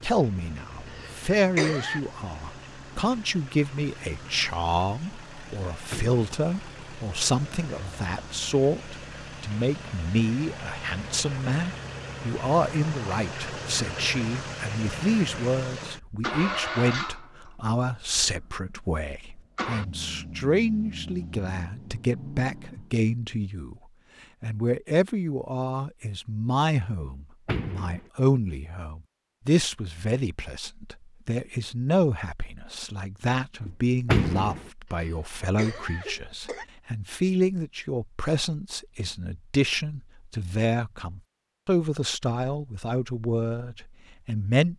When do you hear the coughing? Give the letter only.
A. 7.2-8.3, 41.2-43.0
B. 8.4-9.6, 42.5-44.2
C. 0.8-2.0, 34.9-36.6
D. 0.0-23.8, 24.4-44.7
C.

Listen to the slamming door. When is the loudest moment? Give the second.
34 s.